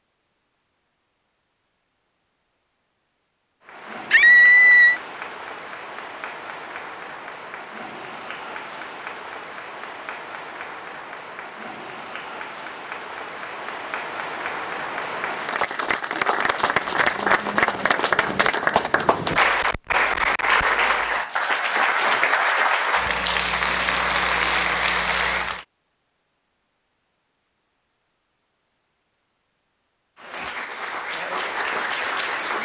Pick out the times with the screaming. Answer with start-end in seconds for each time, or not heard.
4.1-5.0.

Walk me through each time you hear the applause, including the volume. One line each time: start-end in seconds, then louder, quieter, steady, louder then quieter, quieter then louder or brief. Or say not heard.
3.6-25.6 louder
30.1-32.6 brief.